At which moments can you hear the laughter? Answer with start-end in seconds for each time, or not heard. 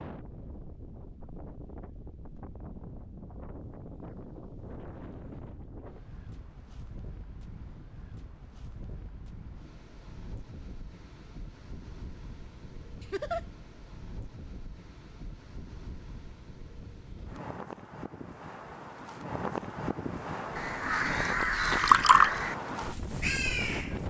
13.0-13.4.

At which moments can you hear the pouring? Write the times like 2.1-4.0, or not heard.
21.4-22.4.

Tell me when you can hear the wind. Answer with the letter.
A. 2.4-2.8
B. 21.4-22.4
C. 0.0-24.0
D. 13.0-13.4
C.